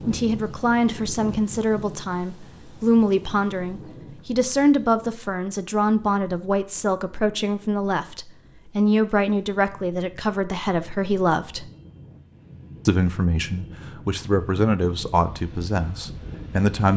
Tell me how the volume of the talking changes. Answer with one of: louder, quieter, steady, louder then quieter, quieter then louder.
steady.